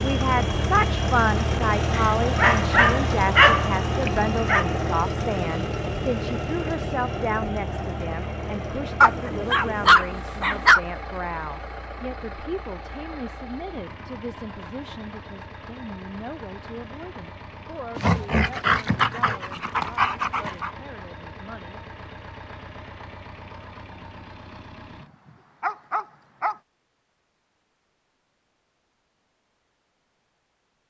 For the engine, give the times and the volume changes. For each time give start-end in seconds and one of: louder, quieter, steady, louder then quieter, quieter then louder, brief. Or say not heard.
0.0-25.1 quieter.